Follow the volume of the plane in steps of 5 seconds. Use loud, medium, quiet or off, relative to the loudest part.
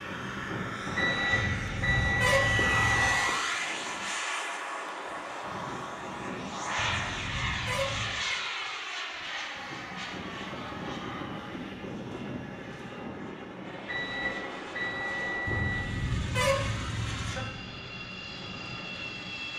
loud, loud, medium, medium.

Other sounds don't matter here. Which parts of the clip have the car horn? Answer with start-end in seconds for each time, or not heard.
1.3-3.1, 6.8-8.2, 15.4-17.4.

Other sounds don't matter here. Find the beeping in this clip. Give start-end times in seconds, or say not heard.
0.9-3.4, 13.8-15.9.